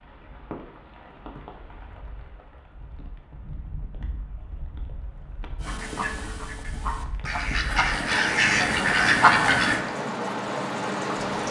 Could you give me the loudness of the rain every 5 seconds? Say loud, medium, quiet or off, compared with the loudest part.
quiet, medium, loud.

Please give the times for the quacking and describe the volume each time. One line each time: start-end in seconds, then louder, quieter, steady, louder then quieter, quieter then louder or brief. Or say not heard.
5.6-9.8 louder.